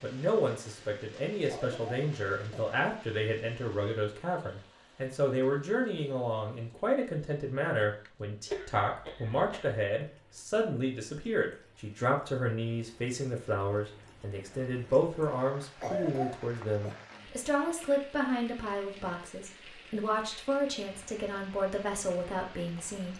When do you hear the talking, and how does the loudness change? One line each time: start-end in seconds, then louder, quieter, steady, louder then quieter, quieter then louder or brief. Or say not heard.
0.0-23.1 steady.